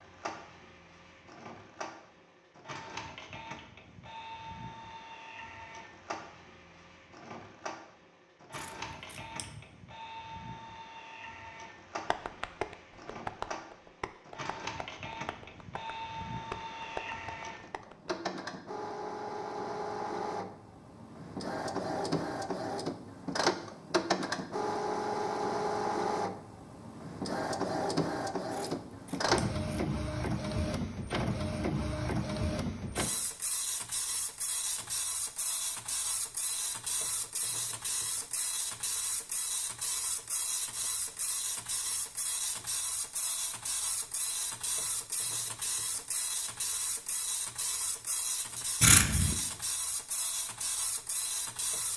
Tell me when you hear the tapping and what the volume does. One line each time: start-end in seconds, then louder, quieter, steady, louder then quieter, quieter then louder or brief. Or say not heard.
12.1-18.1 quieter then louder.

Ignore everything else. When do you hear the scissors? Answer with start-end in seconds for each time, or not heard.
8.5-9.7, 28.5-29.9, 48.8-49.4.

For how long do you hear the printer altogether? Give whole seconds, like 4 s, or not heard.
52 s.